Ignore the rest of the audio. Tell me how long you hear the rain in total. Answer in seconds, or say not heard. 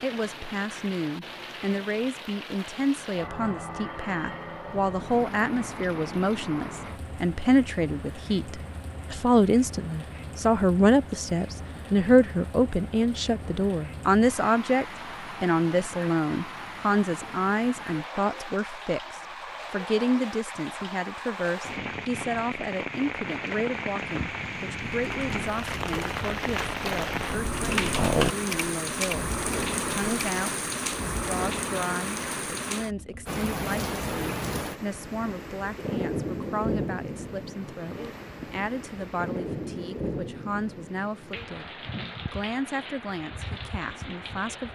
45 s.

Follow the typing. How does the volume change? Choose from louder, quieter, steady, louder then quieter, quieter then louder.
louder then quieter.